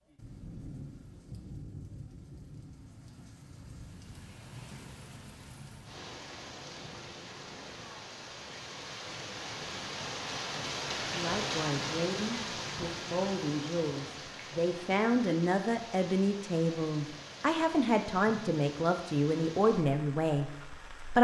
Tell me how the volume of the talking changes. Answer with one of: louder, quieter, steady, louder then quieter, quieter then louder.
louder.